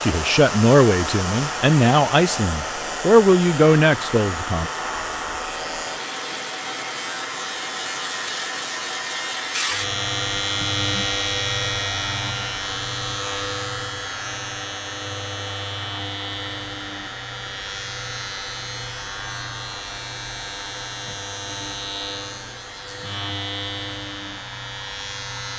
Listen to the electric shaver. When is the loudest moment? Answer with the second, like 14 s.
11 s.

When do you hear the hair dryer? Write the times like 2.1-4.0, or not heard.
0.0-25.5.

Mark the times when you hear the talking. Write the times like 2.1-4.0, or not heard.
0.0-4.7.